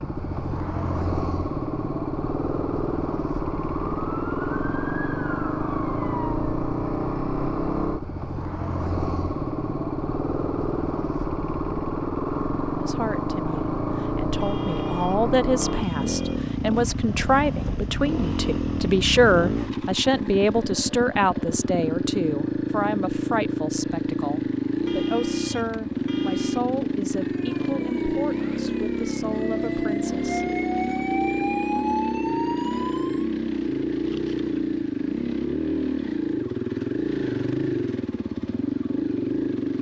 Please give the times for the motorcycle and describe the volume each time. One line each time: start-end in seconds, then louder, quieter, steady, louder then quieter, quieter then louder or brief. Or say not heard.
0.0-39.7 steady.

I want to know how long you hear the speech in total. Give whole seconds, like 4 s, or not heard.
18 s.